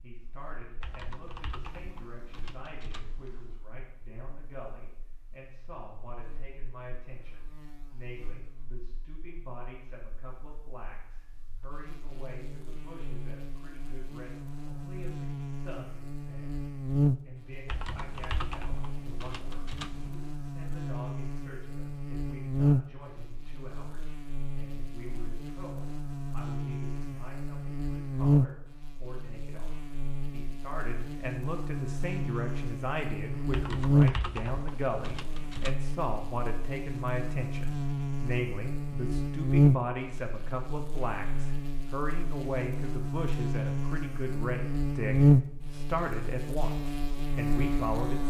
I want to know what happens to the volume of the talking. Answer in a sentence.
The volume of the talking goes up.